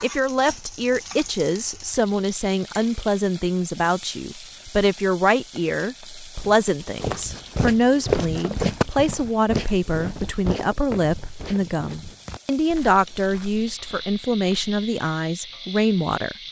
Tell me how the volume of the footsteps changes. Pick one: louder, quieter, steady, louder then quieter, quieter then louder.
quieter.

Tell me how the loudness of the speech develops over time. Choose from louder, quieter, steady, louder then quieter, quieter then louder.
steady.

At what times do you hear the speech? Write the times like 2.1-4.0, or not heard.
0.0-16.4.